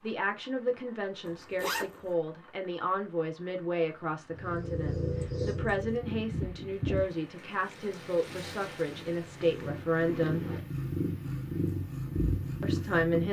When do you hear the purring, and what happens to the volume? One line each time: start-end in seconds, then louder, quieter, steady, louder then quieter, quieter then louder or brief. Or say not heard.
4.3-13.2 quieter then louder.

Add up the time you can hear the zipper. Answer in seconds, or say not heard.
2 s.